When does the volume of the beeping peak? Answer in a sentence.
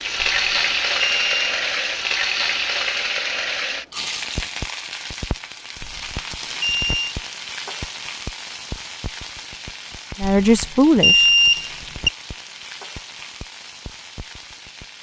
The volume of the beeping peaks at 11 seconds.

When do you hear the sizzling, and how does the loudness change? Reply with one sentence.
You can hear the sizzling from 0.0 to 14.9 s, getting quieter.